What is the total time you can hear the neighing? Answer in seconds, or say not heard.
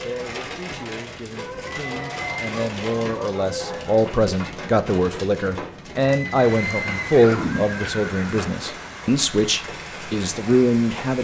3 s.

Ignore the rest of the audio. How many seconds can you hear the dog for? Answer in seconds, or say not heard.
4 s.